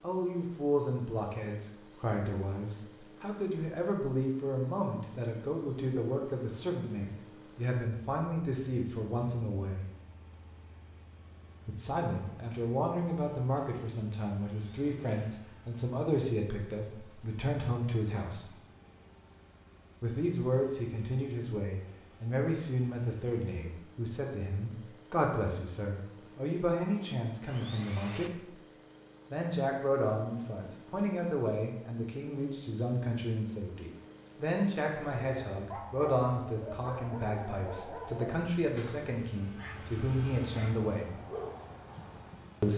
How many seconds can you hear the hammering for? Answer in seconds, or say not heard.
not heard.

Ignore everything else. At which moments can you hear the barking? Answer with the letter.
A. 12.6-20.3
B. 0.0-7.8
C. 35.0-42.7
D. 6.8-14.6
C.